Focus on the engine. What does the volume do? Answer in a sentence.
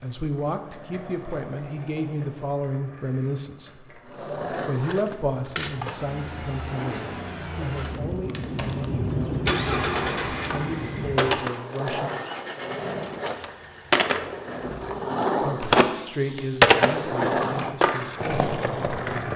The volume of the engine goes up, then down.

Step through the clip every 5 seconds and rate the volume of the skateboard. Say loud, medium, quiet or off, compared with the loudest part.
quiet, quiet, medium, loud.